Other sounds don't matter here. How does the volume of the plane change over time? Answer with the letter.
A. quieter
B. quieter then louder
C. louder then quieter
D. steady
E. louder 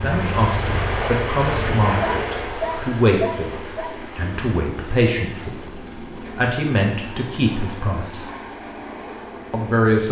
A.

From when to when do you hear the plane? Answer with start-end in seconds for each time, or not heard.
0.0-10.0.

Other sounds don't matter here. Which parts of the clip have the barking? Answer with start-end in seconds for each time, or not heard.
2.0-3.9.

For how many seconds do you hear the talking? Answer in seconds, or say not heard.
8 s.